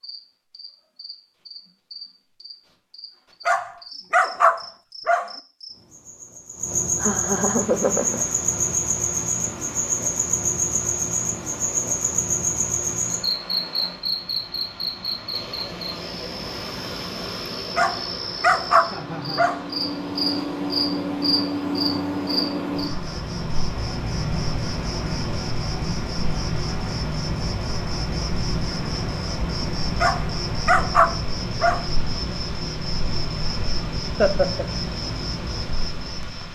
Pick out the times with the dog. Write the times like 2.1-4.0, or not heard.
3.5-5.3, 17.8-19.6, 30.0-31.9.